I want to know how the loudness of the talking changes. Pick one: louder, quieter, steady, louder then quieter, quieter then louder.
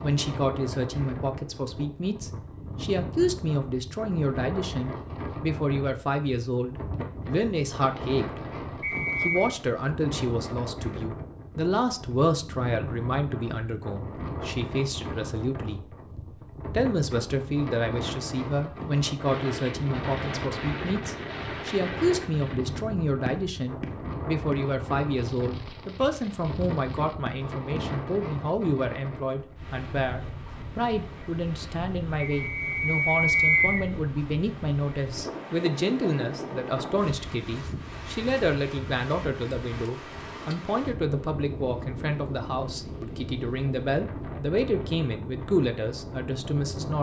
steady.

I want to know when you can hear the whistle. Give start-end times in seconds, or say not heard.
8.8-9.5, 32.3-33.9.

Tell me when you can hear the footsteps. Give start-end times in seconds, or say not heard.
not heard.